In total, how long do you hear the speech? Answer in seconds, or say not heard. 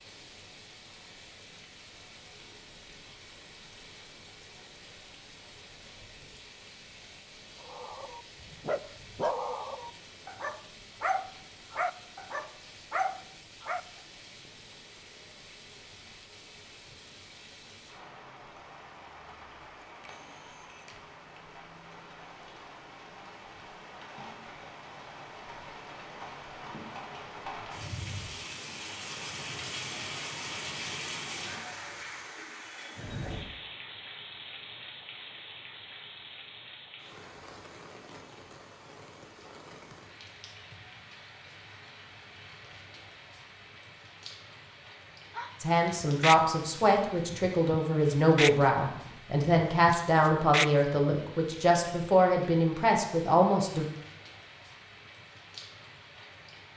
8 s.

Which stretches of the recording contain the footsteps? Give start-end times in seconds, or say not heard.
not heard.